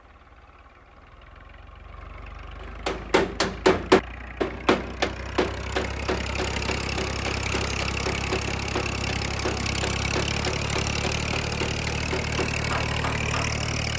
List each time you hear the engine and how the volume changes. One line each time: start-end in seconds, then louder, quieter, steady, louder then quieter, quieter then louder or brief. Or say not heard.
0.0-13.9 louder.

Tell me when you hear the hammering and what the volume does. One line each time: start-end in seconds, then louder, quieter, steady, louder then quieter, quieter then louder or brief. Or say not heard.
2.9-13.6 quieter.